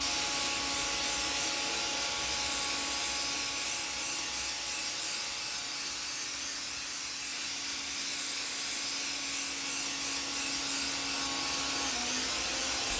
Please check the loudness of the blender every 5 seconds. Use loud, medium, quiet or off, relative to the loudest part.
loud, medium, loud.